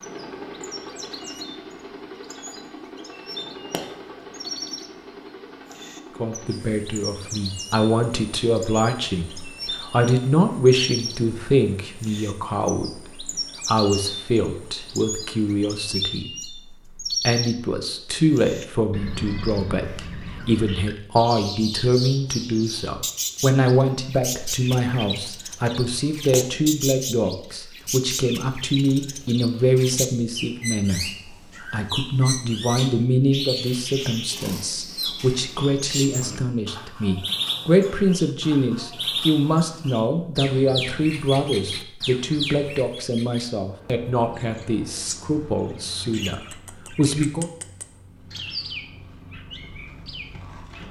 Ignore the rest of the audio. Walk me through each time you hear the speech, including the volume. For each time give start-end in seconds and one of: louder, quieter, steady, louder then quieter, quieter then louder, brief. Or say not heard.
6.2-47.5 steady.